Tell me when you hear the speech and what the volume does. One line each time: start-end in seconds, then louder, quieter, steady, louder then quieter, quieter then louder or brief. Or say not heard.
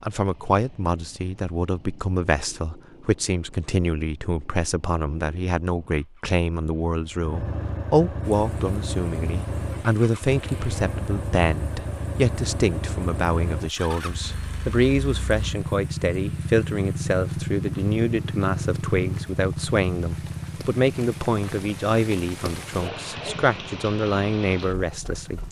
0.0-25.4 steady.